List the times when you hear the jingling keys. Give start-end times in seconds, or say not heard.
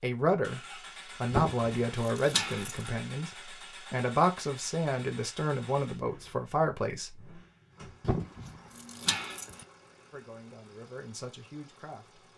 1.3-2.9, 8.0-9.7.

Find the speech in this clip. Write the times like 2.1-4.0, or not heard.
0.0-0.6, 1.2-7.3, 10.1-12.2.